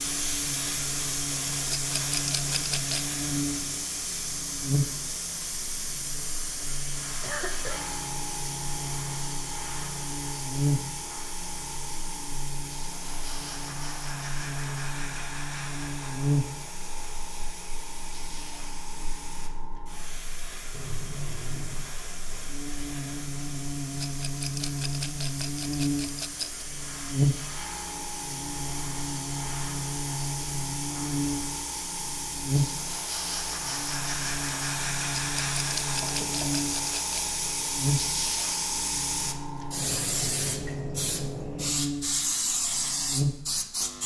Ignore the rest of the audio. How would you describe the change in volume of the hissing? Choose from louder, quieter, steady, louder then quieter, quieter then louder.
quieter then louder.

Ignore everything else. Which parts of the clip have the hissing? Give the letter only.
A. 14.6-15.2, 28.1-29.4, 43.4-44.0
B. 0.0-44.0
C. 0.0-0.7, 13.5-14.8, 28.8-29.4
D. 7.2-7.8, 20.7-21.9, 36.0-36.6
B.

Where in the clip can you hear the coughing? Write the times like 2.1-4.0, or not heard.
7.2-7.8, 20.7-21.9, 36.0-36.6.